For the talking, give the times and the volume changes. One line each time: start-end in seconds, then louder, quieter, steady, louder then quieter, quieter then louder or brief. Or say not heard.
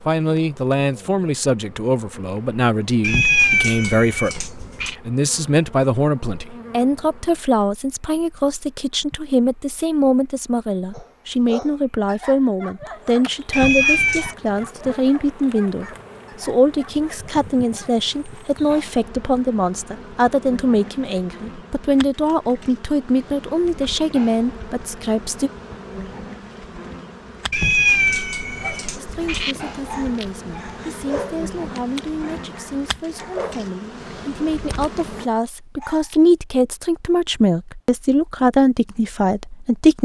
0.0-25.5 steady
28.9-40.0 louder.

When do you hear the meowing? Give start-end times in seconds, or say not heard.
3.0-5.0, 13.5-14.3, 27.5-29.6.